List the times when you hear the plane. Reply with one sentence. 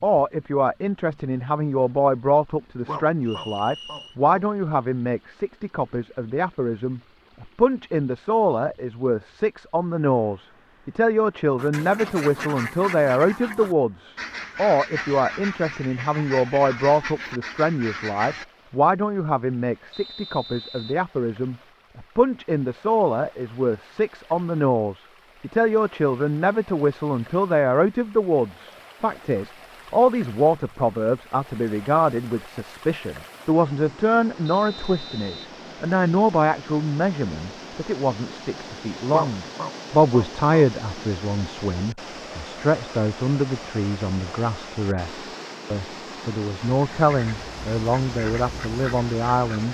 You can't hear the plane here.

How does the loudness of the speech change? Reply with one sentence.
The volume of the speech stays about the same.